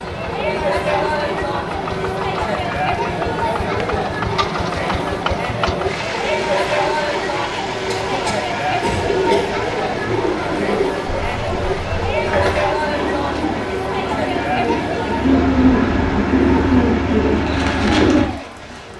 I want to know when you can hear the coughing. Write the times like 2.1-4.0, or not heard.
7.9-9.6.